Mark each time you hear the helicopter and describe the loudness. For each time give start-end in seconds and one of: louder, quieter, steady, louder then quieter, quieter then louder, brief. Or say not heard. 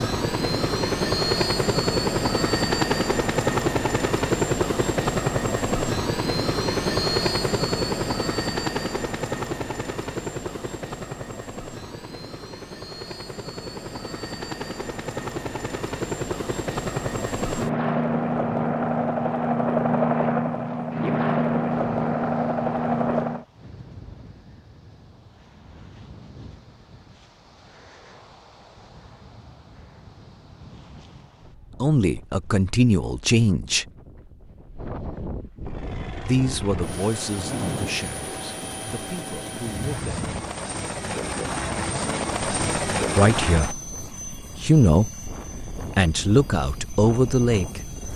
0.0-23.4 quieter then louder
35.6-48.1 louder then quieter.